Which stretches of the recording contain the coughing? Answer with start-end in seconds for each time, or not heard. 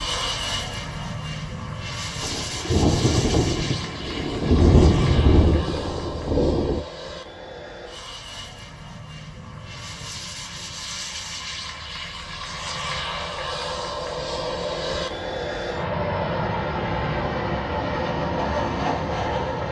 not heard.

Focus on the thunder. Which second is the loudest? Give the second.
5 s.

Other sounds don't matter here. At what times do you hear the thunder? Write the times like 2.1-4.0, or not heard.
2.2-6.8.